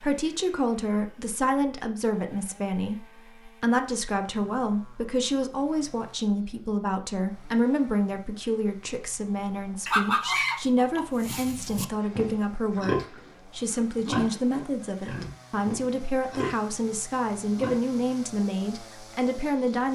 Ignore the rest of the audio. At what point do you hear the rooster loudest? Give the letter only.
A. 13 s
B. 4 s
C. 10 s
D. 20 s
C.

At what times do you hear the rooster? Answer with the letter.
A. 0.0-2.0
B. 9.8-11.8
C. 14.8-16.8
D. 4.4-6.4
B.